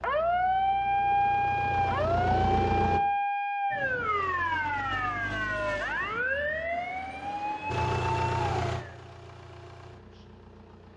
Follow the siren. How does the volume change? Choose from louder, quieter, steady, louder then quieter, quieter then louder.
quieter.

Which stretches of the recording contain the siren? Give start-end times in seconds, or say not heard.
0.0-8.9.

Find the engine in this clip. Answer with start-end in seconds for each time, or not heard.
0.0-3.0, 7.7-10.9.